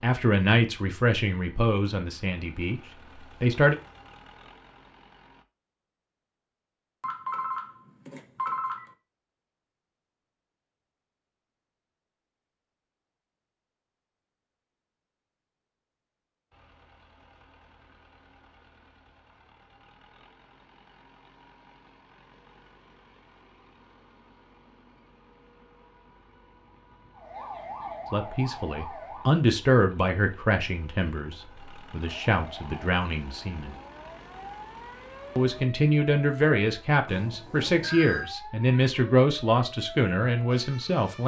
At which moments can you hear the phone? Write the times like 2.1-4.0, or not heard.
7.0-8.9, 37.0-38.2.